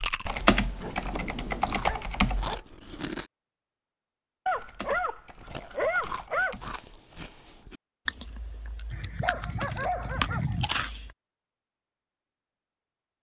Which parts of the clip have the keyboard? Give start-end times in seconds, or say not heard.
0.2-2.5, 4.5-6.8, 9.4-10.8.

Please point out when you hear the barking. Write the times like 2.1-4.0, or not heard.
0.6-2.6, 4.5-6.5, 8.9-10.8.